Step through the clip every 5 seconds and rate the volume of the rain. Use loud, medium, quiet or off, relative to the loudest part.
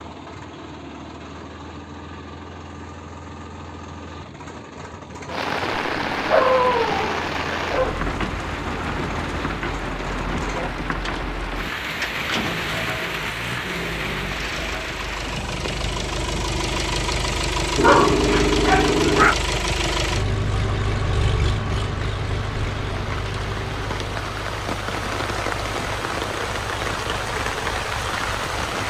off, loud, loud, medium, medium, loud.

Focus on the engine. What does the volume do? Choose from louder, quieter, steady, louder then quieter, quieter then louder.
louder then quieter.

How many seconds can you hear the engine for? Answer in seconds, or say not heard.
29 s.